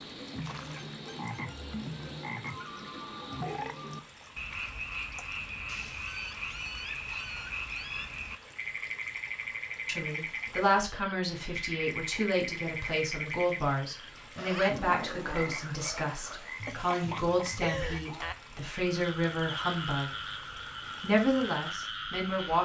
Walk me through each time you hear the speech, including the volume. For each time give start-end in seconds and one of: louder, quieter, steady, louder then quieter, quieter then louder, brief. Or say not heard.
9.8-20.1 steady
21.0-22.6 brief.